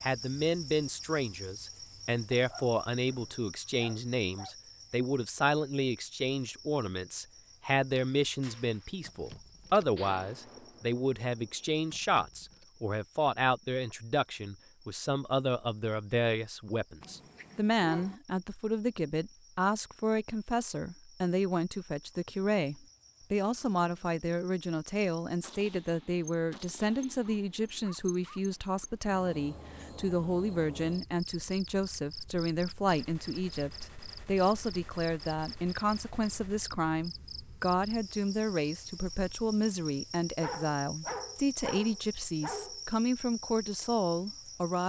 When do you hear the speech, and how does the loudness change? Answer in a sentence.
The speech can be heard from 0.0 to 44.8 s, at a steady volume.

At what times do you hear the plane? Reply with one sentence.
The plane can't be heard in this clip.